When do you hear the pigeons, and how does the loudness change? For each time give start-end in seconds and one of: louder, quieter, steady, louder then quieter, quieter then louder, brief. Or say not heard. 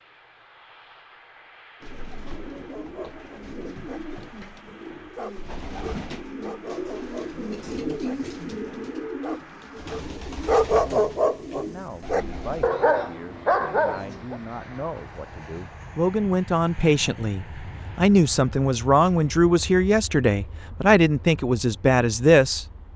1.8-12.7 louder then quieter.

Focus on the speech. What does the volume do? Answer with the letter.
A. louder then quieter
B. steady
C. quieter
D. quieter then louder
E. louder
E.